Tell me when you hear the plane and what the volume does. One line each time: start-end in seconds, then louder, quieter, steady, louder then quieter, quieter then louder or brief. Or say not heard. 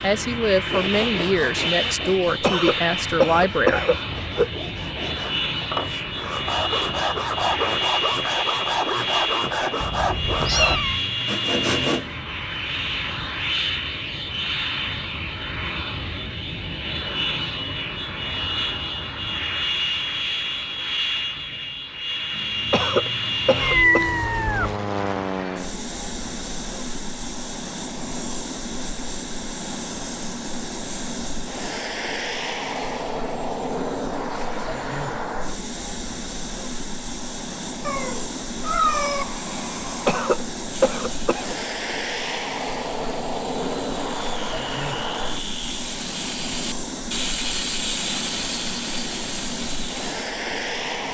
0.0-51.0 steady.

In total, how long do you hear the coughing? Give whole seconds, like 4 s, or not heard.
5 s.